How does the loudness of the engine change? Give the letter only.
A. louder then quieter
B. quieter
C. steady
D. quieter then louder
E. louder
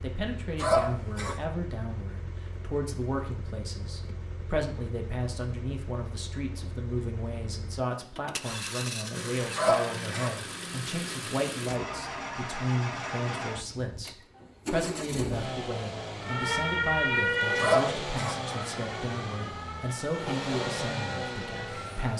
E.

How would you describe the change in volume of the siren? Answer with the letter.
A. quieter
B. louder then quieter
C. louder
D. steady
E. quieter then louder
A.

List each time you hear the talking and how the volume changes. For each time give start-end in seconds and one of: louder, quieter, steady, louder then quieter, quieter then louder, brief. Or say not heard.
0.0-22.1 steady.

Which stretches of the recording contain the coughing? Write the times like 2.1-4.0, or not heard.
0.6-1.4, 9.6-10.3, 17.6-18.4.